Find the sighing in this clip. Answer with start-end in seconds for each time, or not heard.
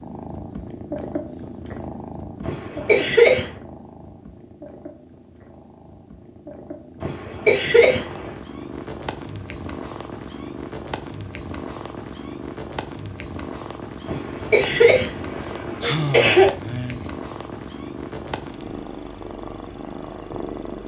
15.8-17.1.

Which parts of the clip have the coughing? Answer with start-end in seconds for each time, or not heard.
2.5-3.5, 7.0-8.1, 14.1-16.5.